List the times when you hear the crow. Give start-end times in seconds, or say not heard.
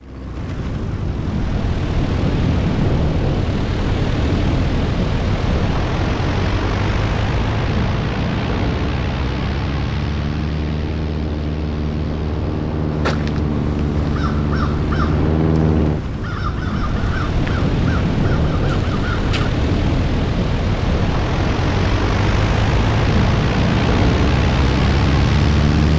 12.9-19.5.